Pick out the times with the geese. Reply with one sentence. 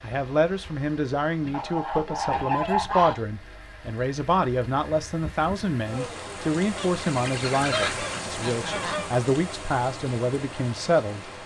The geese can be heard from 1.5 to 3.2 s and from 6.8 to 9.2 s.